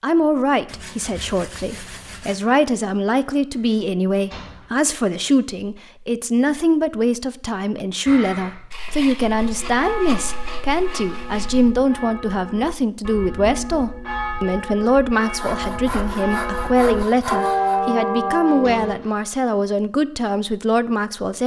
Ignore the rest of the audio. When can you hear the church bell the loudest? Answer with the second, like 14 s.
18 s.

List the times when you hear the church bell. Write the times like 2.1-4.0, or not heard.
9.3-19.0.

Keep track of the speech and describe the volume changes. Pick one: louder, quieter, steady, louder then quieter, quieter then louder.
steady.